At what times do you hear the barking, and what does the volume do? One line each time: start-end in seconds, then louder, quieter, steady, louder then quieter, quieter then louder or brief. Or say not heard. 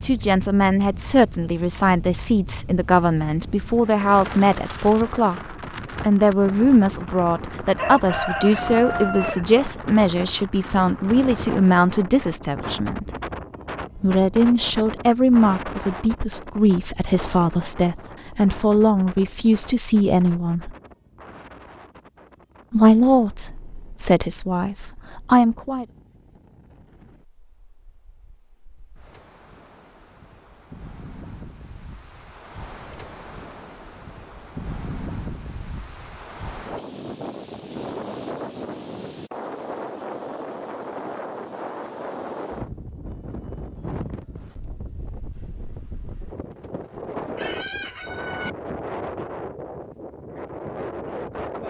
not heard.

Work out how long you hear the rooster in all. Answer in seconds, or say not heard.
3 s.